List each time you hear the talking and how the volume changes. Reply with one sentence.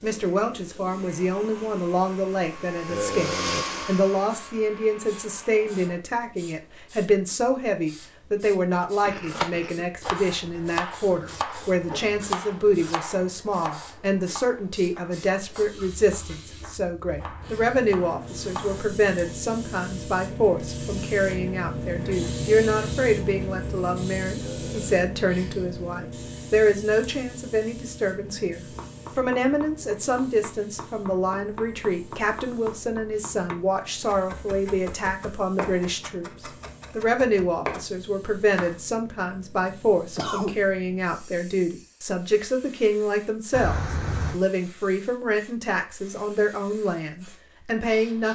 The talking can be heard from 0.0 to 48.3 s, at a steady volume.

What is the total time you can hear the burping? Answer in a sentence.
The burping can be heard for 2 seconds in total.